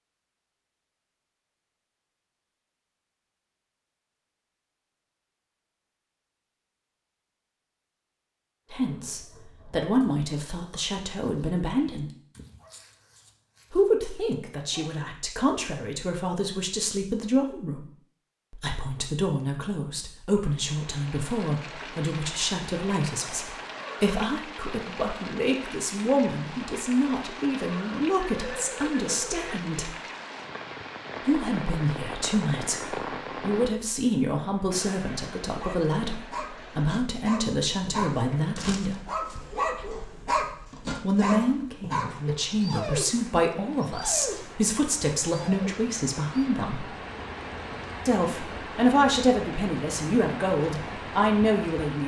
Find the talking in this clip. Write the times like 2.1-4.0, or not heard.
8.7-12.1, 13.7-17.9, 18.5-29.9, 31.2-39.0, 41.0-46.9, 48.0-52.0.